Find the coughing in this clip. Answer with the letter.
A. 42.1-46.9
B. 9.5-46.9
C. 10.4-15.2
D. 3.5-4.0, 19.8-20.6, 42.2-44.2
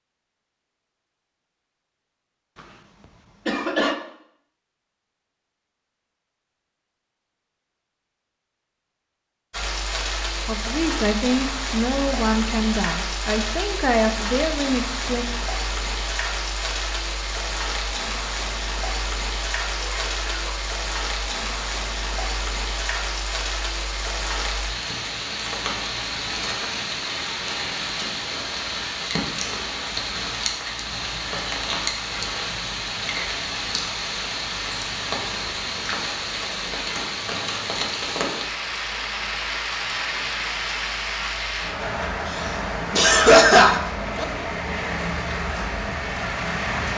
D.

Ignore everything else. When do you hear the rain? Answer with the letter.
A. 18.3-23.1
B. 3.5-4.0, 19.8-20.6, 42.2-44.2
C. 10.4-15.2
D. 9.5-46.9
D.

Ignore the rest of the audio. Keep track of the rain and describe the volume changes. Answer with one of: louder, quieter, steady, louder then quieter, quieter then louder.
steady.